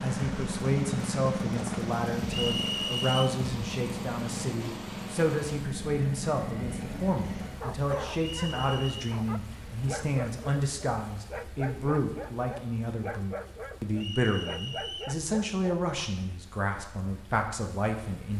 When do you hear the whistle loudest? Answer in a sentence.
The loudest moment of the whistle is at 3 seconds.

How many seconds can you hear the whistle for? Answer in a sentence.
You can hear the whistle for 3 seconds altogether.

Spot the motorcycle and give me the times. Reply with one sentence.
You can hear the motorcycle from 0.0 to 7.8 s.